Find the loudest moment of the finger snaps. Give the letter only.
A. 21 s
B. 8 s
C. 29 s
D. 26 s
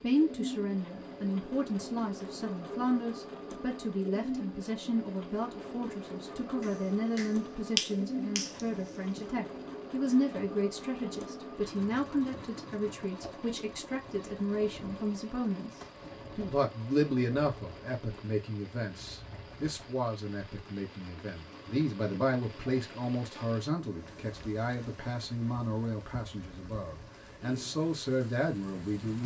B.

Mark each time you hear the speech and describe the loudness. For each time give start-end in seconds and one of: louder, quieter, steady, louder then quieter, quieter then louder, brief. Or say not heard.
0.0-29.2 steady.